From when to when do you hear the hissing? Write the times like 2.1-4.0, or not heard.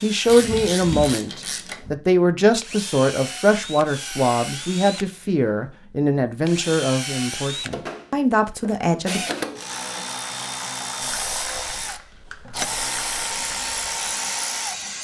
11.0-14.9.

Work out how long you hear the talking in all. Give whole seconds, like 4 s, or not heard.
9 s.